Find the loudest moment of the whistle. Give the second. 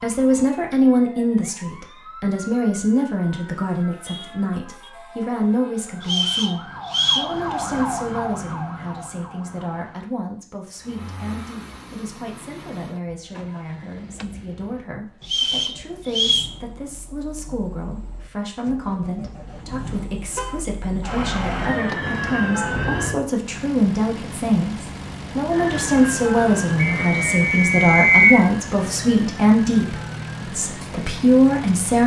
28 s.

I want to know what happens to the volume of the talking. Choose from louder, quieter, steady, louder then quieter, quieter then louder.
quieter then louder.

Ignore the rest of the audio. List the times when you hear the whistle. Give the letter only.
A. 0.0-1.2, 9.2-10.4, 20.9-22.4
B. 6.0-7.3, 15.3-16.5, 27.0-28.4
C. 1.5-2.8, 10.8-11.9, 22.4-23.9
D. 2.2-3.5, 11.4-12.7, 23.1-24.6
B.